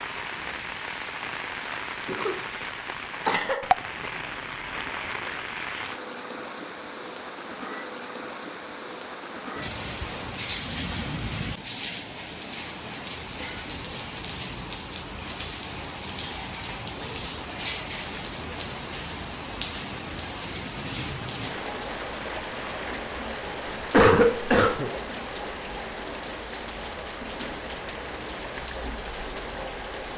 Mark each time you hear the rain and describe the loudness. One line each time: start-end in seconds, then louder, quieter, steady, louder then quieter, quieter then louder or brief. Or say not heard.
0.0-30.1 steady.